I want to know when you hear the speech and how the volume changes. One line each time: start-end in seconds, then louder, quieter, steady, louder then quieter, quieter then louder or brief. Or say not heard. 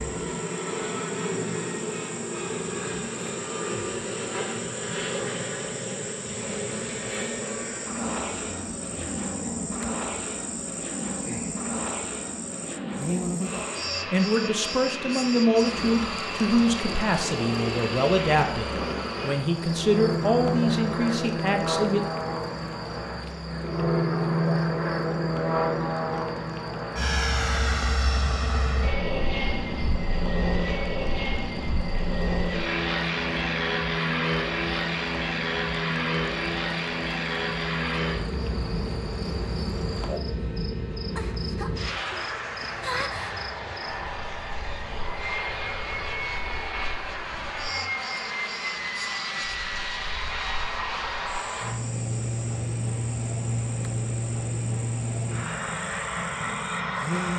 14.1-22.1 steady.